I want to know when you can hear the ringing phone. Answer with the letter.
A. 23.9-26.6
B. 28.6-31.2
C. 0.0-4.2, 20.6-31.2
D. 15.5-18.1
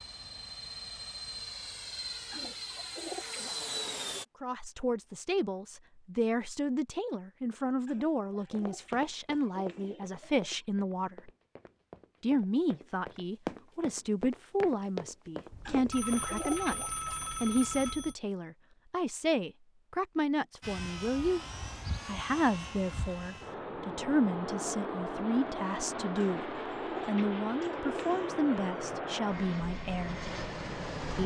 D.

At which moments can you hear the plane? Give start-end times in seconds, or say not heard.
0.0-4.2, 20.6-31.2.